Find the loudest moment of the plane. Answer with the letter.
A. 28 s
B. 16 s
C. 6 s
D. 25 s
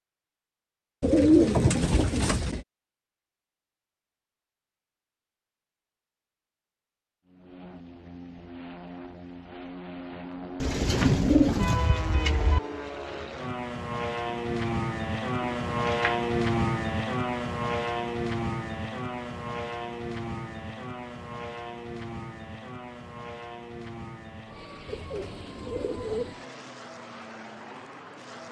B.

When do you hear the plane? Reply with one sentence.
You can hear the plane from 7.2 to 28.4 s.